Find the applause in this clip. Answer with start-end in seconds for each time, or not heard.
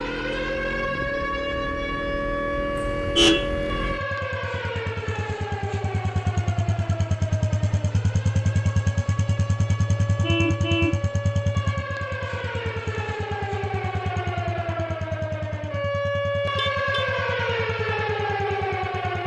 not heard.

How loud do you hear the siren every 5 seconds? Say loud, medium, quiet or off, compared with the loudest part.
loud, medium, medium, loud.